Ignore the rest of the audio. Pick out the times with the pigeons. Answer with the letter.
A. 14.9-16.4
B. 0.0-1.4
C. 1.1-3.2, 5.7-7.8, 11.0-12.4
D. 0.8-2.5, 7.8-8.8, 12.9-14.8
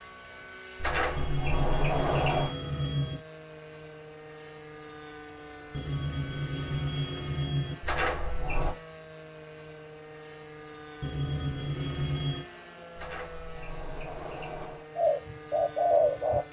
A.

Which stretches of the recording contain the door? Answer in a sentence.
You can hear the door from 0.8 to 2.5 s, from 7.8 to 8.8 s and from 12.9 to 14.8 s.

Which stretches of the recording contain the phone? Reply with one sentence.
You can hear the phone from 1.1 to 3.2 s, from 5.7 to 7.8 s and from 11.0 to 12.4 s.